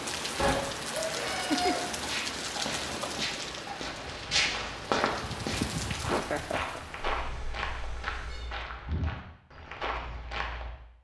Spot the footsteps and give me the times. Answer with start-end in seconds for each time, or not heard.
2.0-10.8.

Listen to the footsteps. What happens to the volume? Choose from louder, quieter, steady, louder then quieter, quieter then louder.
louder then quieter.